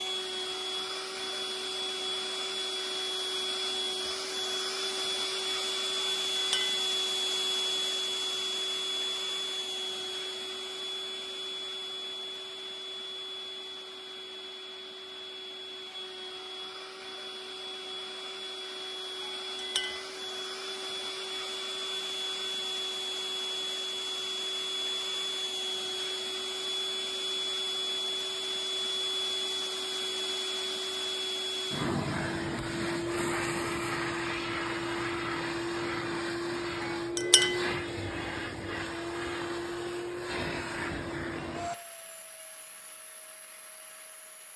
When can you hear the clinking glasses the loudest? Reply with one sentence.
The loudest moment of the clinking glasses is at 37 seconds.